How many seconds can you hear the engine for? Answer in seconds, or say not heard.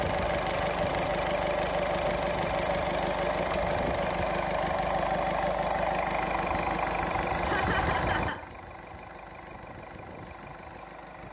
11 s.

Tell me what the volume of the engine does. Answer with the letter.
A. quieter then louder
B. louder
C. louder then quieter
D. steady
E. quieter
E.